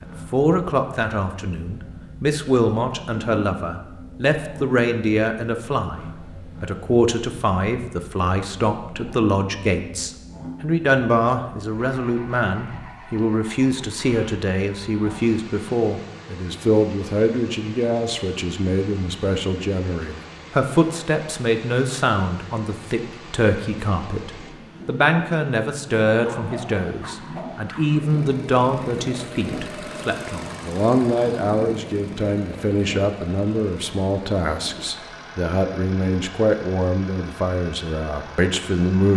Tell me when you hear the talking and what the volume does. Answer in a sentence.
The talking can be heard from 0.0 to 39.1 s, at a steady volume.